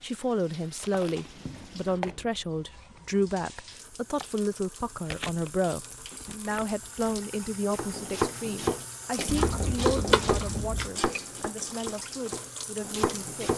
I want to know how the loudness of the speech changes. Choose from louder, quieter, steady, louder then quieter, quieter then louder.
quieter.